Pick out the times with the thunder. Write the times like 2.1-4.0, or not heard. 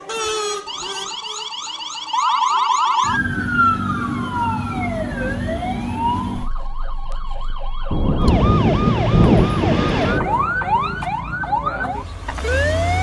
7.9-10.4.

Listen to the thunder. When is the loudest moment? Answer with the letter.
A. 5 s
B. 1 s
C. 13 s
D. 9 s
D.